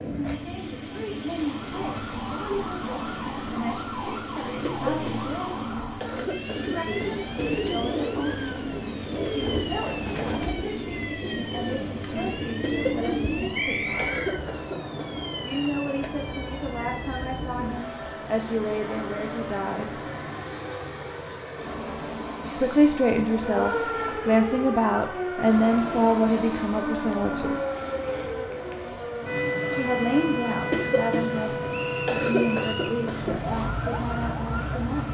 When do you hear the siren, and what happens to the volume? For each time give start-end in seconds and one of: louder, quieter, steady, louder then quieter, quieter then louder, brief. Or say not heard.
1.4-17.6 steady
23.4-35.1 steady.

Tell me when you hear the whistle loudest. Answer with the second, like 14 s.
14 s.